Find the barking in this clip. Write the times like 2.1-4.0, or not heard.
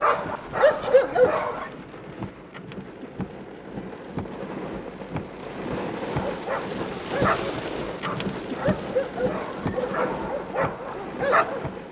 0.0-1.7, 6.0-11.7.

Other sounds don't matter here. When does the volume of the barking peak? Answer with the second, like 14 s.
1 s.